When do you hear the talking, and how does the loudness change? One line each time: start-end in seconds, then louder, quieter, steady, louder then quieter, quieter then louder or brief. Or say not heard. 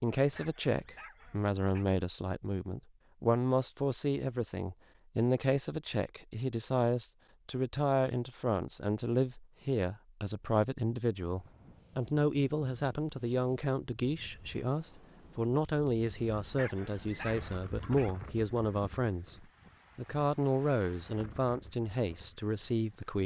0.0-23.2 steady.